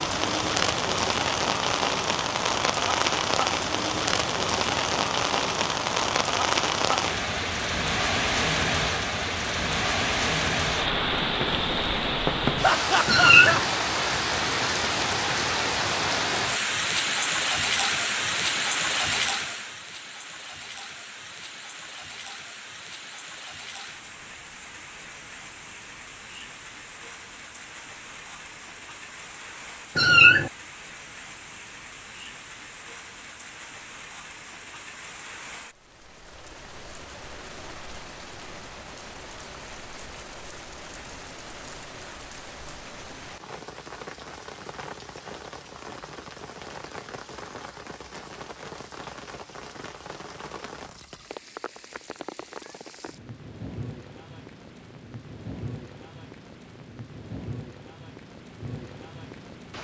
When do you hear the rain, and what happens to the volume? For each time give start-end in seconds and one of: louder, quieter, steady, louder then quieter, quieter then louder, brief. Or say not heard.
0.0-59.7 quieter.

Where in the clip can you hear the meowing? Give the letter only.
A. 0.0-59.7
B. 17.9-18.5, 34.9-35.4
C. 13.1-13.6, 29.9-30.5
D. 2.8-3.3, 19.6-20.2
C.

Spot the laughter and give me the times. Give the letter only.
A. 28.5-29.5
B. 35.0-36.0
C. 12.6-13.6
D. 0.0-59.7
C.